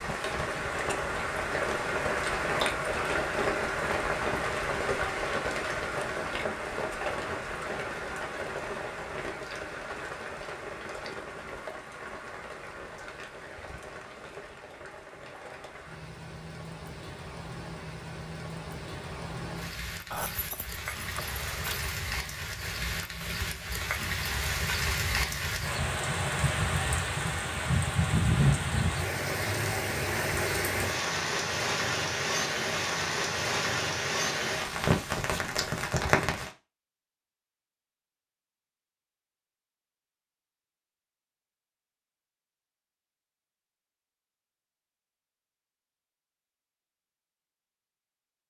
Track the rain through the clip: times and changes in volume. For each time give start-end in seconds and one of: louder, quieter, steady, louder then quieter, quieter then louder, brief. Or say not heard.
0.0-36.5 quieter then louder.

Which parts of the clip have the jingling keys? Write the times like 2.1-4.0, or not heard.
20.1-21.9.